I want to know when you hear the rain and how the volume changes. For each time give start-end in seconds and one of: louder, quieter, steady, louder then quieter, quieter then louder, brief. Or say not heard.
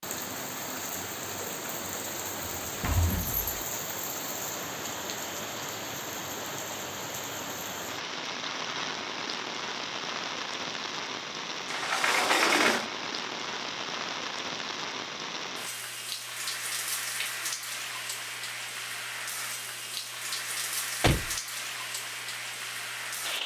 0.0-23.4 steady.